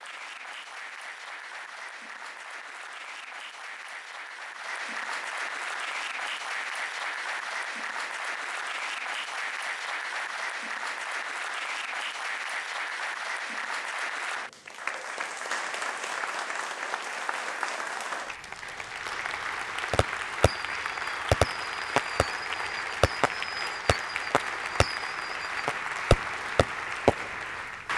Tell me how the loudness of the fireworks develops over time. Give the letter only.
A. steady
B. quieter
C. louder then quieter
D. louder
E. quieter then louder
E.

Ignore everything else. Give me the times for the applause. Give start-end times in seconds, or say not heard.
0.0-27.9.